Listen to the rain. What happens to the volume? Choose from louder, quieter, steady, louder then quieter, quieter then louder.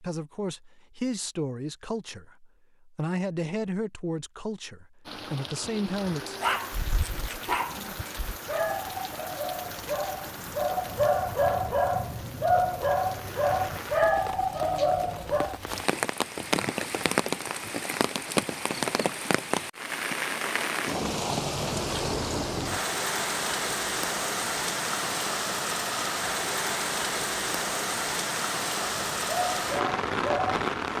louder.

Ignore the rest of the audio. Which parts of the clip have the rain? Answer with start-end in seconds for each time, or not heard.
5.0-30.9.